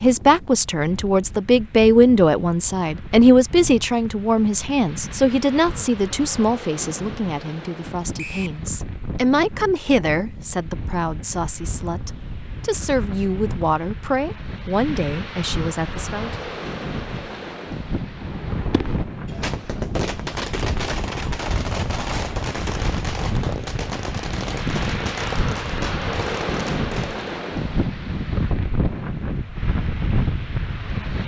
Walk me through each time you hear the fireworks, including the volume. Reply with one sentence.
You can hear the fireworks from 18.0 to 27.2 s, at a steady volume.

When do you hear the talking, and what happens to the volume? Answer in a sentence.
You can hear the talking from 0.0 to 16.4 s, getting quieter.